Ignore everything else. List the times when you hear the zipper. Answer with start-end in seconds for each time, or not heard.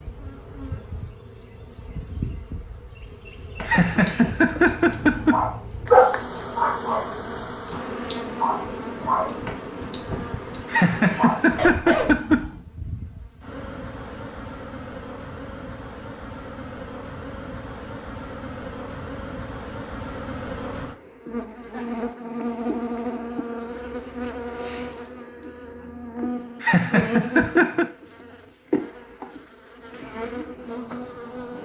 not heard.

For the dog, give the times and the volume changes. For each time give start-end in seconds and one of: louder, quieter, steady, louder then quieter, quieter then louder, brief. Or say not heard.
3.6-12.2 louder then quieter.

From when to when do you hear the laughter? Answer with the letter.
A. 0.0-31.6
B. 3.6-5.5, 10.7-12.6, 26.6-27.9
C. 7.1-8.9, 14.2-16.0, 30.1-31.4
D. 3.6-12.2
B.